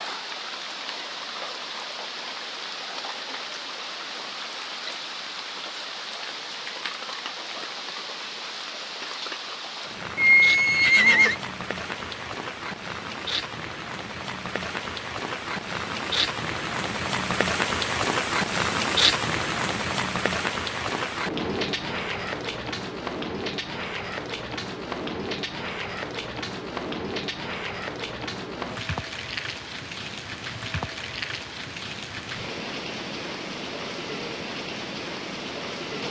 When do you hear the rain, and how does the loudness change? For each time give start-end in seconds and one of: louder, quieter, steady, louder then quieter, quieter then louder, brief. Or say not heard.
0.0-36.0 louder then quieter.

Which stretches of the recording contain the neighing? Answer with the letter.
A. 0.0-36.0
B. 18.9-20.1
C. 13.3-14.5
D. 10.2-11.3
D.